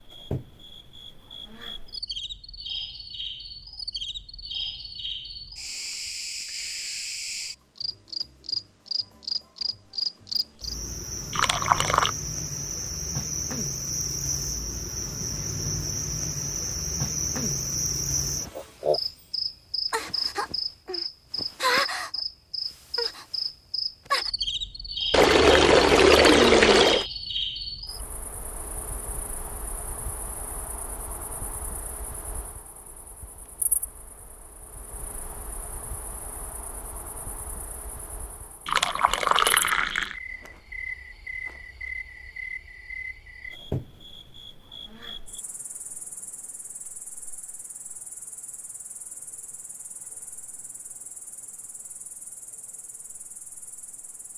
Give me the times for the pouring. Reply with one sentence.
You can hear the pouring from 11.3 to 12.1 s, from 25.1 to 27.1 s and from 38.6 to 40.1 s.